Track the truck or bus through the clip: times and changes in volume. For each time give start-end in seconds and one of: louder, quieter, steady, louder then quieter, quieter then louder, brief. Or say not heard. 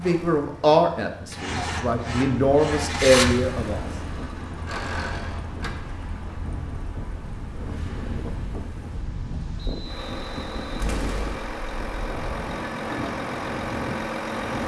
0.0-14.6 quieter then louder.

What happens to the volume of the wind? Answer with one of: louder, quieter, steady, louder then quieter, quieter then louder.
louder.